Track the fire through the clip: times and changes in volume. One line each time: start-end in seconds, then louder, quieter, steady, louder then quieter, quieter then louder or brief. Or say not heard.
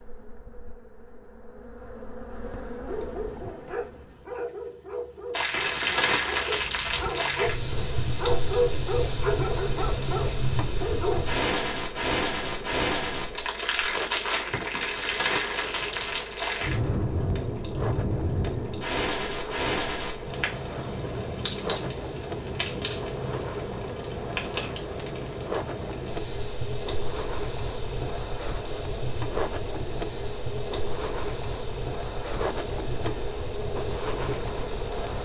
5.3-35.2 quieter.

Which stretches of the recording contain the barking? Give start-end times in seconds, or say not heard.
2.9-11.3.